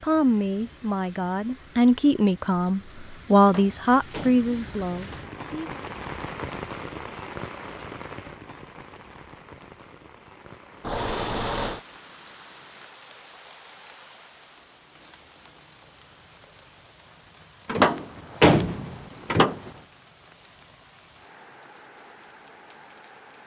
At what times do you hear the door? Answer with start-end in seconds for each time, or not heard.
3.4-5.2, 17.6-19.7.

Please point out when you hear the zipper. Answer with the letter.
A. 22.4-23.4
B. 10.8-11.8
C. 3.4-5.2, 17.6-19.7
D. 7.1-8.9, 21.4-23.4
B.